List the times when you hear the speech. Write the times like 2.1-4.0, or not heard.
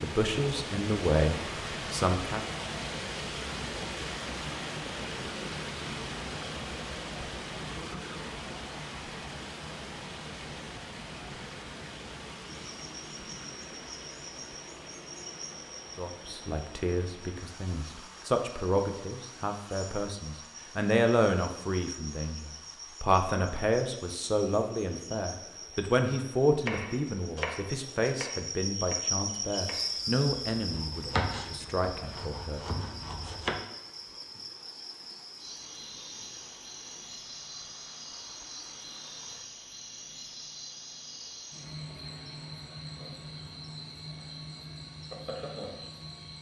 0.0-2.4, 15.9-32.8.